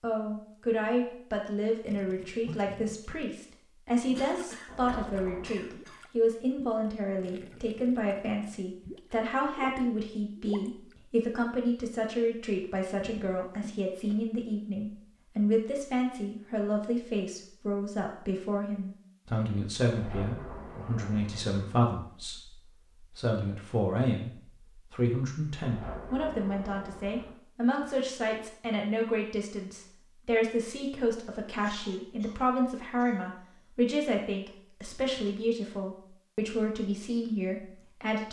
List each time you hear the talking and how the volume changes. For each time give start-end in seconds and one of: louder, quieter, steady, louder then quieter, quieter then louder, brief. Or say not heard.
0.0-38.2 steady.